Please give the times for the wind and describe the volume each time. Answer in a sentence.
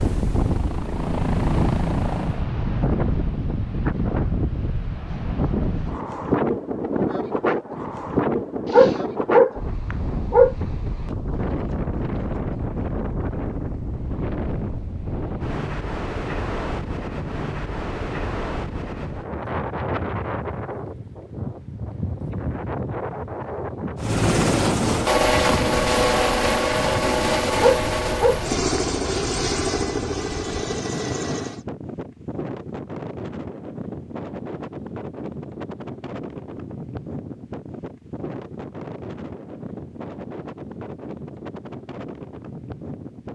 You can hear the wind from 0.0 to 43.3 s, getting quieter.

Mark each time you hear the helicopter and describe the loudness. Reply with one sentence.
You can hear the helicopter briefly from 0.0 to 2.5 s; and from 23.9 to 31.6 s, getting quieter.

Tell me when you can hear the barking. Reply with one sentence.
The barking can be heard from 8.7 to 10.6 s and from 27.6 to 28.8 s.